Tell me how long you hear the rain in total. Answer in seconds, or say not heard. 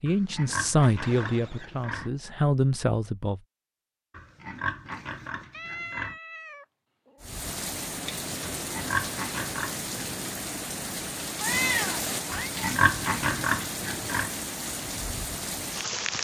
9 s.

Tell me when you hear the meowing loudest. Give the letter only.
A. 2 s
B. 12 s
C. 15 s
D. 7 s
B.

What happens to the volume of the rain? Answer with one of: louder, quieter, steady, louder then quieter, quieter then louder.
steady.